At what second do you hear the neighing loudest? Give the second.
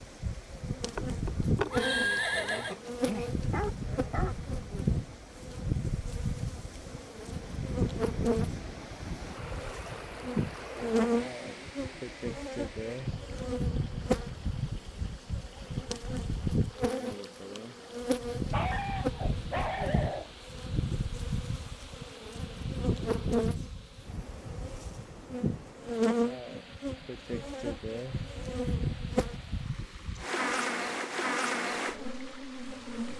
2 s.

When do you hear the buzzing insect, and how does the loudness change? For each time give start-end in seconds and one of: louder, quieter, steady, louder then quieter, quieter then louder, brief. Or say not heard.
0.0-33.1 steady.